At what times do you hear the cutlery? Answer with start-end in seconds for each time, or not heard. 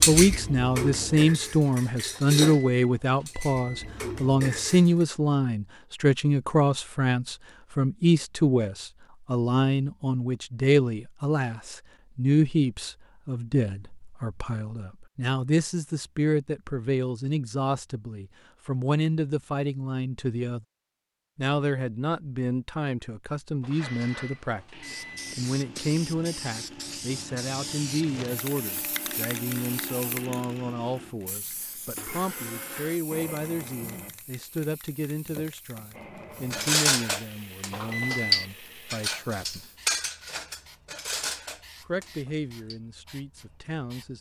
0.0-4.8, 36.5-42.8.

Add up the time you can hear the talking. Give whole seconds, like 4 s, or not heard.
41 s.